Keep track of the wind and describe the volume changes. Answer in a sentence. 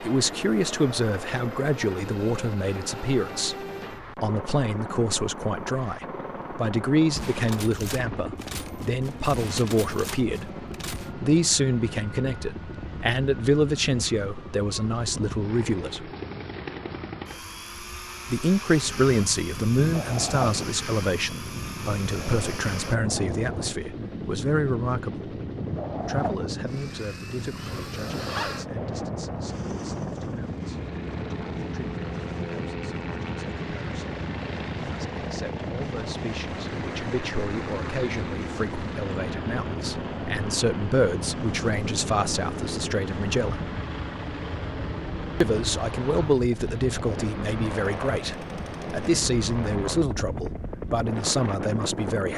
The loudness of the wind stays about the same.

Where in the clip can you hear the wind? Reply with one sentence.
You can hear the wind from 18.8 to 52.3 s.